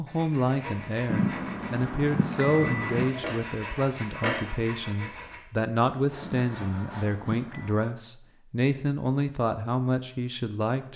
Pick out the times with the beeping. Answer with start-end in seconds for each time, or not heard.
1.1-3.1, 6.2-7.7.